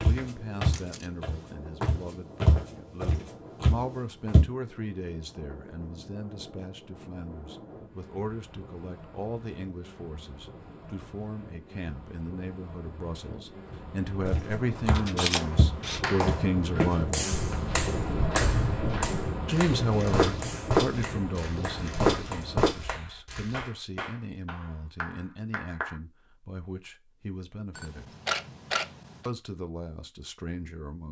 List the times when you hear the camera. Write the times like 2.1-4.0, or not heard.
0.7-1.1, 14.9-16.0, 27.8-29.3.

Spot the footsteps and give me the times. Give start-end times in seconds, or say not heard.
0.0-4.5, 14.2-23.6.